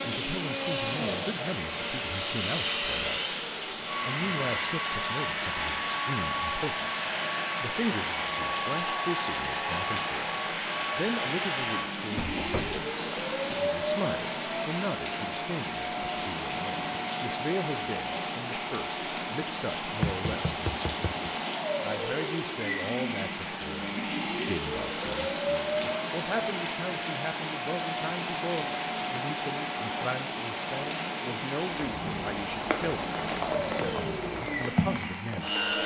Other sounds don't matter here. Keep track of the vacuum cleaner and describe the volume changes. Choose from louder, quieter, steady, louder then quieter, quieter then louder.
steady.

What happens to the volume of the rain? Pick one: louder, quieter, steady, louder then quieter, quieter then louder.
steady.